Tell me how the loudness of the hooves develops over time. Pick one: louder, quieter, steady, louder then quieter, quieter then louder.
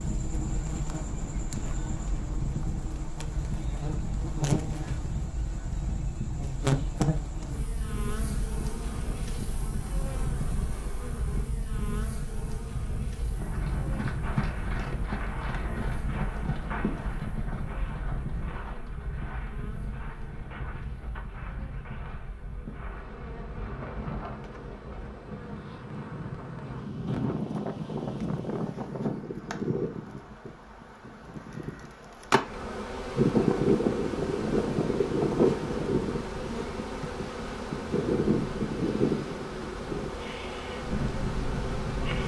quieter.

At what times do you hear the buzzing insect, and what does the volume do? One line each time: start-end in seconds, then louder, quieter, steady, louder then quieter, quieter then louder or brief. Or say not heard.
0.0-42.2 quieter then louder.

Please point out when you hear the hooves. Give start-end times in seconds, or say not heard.
13.3-24.1.